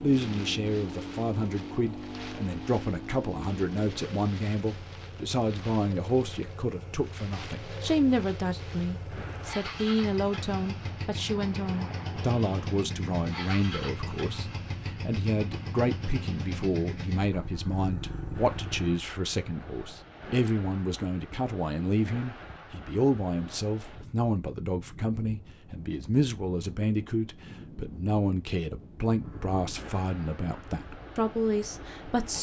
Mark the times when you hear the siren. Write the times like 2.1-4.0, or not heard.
not heard.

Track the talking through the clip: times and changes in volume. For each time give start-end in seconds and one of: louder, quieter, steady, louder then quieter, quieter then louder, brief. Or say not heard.
0.0-32.3 steady.